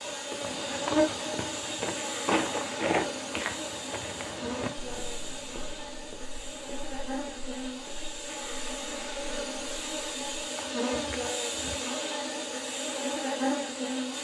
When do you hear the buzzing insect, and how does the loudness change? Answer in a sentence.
You can hear the buzzing insect from 0.0 to 14.1 s, getting quieter then louder.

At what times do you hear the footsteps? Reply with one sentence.
You can hear the footsteps from 0.4 to 11.8 s.